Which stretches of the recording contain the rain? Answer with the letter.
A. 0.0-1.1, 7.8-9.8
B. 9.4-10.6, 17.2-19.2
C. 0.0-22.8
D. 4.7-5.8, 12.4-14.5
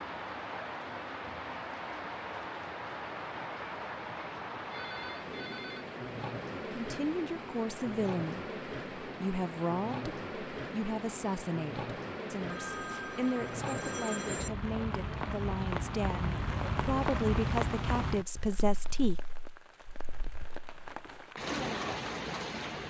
C.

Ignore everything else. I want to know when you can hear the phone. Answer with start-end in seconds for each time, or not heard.
4.7-5.8, 12.4-14.5.